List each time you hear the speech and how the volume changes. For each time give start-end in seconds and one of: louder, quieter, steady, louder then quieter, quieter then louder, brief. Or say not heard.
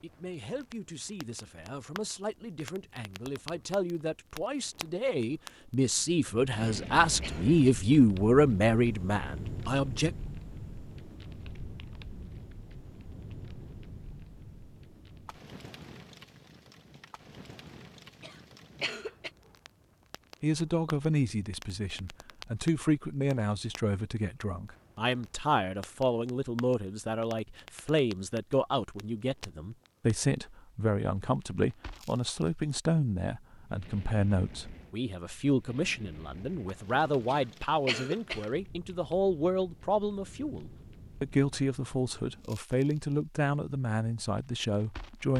0.0-10.2 louder
20.4-45.3 steady.